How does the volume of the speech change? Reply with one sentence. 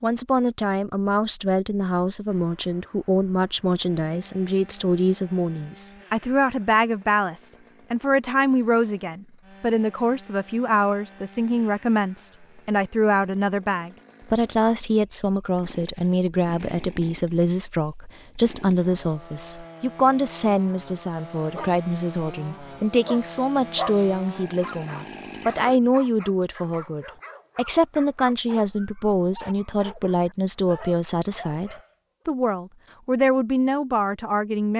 The volume of the speech stays about the same.